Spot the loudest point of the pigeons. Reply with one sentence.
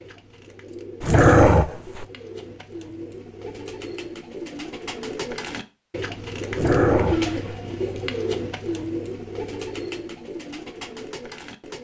The loudest moment of the pigeons is at 7 seconds.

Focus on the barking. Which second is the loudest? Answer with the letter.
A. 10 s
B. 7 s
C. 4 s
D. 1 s
D.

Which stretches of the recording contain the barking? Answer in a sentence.
You can hear the barking from 1.0 to 2.0 s and from 6.5 to 7.5 s.